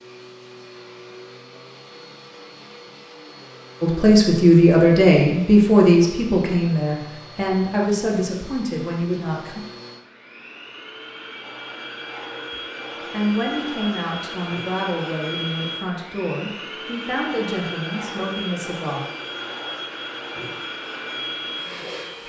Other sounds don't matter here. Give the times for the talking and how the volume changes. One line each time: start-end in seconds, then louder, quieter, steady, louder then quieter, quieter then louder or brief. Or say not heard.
3.8-9.6 quieter
13.1-19.1 steady.